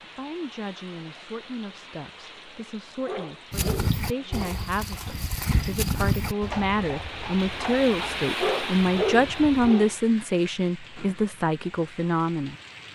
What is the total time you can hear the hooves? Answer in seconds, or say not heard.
6 s.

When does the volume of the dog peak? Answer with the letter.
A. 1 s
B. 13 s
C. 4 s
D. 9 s
D.